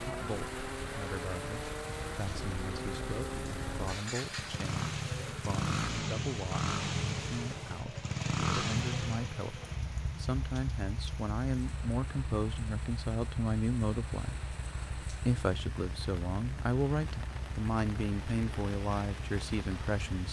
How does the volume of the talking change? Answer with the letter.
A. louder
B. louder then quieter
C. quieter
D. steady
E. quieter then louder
A.